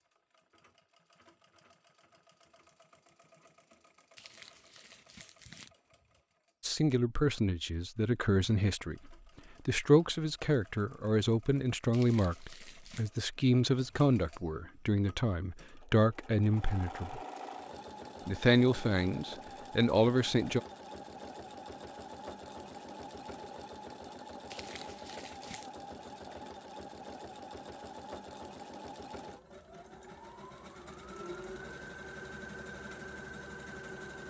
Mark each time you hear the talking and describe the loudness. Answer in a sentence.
The talking can be heard from 6.6 to 17.2 s, at a steady volume; and briefly from 18.2 to 20.6 s.